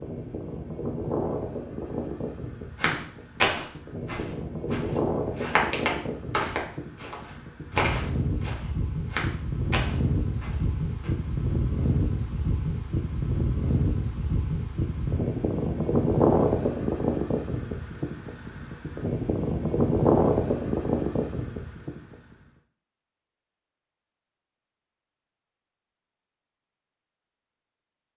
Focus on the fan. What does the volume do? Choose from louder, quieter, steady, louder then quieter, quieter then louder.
louder.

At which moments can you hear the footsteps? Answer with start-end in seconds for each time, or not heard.
2.8-11.1.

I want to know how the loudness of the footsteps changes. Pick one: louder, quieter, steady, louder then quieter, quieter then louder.
quieter.